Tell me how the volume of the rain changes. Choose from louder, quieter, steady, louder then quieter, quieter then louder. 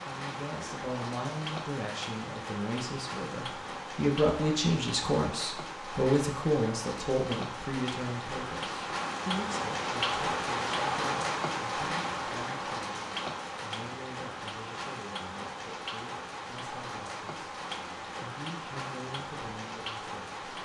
louder then quieter.